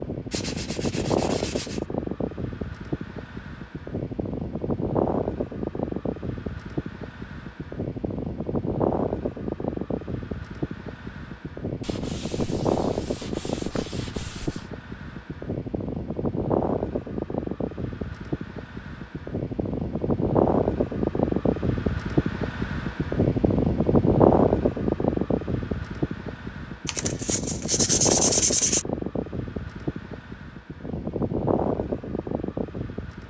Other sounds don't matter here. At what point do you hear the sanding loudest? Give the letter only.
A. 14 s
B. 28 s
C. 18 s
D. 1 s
B.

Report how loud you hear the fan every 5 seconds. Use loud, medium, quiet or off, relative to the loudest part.
medium, medium, medium, medium, loud, medium, medium.